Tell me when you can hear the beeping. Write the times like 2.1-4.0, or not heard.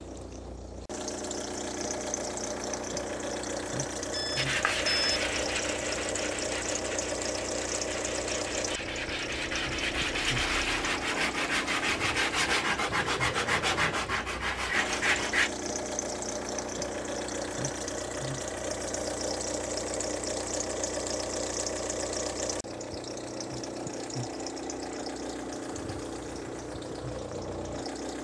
4.1-5.2.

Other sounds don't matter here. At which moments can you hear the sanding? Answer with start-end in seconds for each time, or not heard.
4.3-15.5.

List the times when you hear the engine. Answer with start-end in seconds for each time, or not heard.
0.0-28.1.